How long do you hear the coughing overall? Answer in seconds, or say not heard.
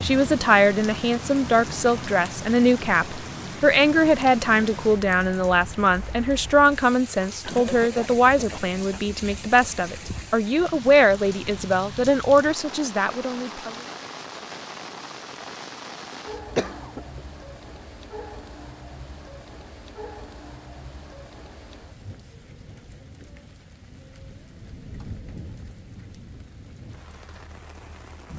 2 s.